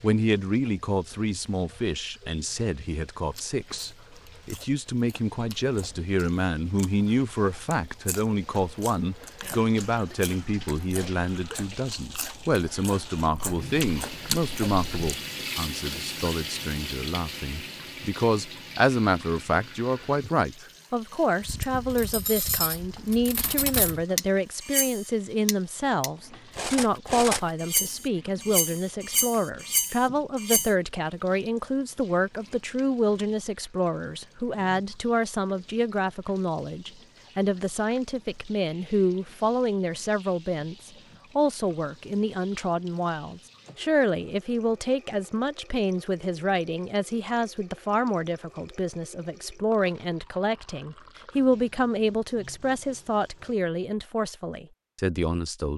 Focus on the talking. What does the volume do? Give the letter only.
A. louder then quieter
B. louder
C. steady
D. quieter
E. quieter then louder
C.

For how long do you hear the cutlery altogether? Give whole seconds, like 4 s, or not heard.
9 s.